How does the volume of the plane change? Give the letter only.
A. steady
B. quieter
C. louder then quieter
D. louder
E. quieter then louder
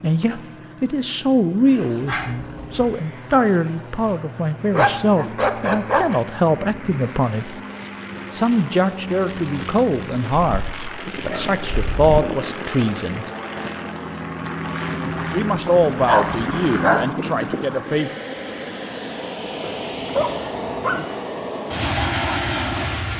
D.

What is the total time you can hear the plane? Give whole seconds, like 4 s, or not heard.
23 s.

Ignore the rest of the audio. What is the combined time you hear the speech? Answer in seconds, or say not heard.
15 s.